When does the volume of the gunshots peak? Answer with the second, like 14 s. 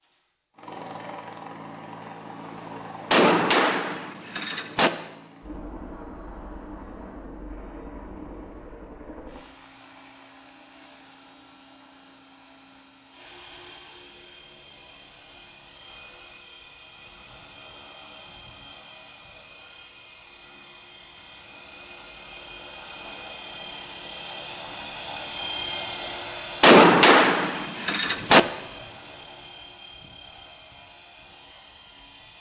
27 s.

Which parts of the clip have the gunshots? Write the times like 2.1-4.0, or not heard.
3.1-4.9, 26.6-28.4.